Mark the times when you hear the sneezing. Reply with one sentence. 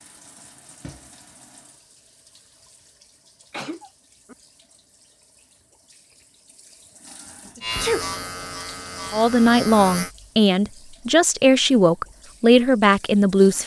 You can hear the sneezing from 3.5 to 4.3 s and from 7.5 to 8.1 s.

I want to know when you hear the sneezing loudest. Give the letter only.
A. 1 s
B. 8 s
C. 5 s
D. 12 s
B.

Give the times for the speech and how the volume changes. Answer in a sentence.
The speech can be heard from 9.1 to 13.6 s, at a steady volume.